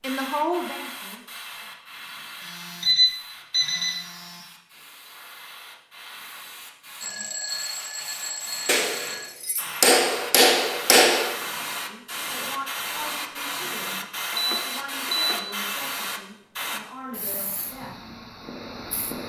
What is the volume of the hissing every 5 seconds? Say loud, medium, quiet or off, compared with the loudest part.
medium, medium, loud, loud.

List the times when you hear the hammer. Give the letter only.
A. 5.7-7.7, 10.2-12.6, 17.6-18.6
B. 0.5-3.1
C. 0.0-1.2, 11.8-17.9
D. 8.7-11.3
D.